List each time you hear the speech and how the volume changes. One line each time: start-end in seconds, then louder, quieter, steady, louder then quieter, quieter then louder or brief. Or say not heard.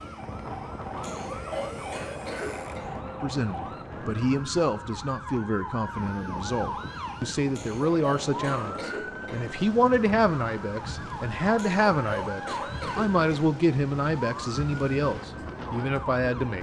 3.2-16.5 steady.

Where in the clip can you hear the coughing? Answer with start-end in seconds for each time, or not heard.
1.0-2.9, 7.5-9.4, 11.6-13.4.